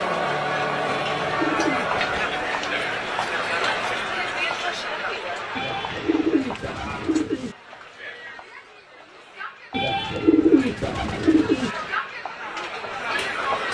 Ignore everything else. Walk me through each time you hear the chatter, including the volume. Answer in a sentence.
You can hear the chatter from 0.0 to 13.6 s, getting quieter then louder.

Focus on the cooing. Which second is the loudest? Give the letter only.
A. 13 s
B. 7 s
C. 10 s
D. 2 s
C.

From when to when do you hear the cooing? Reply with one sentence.
You can hear the cooing from 0.8 to 2.4 s, from 5.5 to 7.5 s and from 9.7 to 11.7 s.